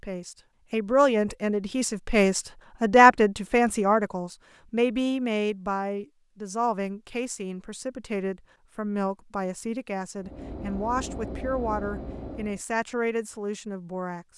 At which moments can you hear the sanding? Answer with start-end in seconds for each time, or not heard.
not heard.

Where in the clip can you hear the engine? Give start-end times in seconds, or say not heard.
10.2-12.7.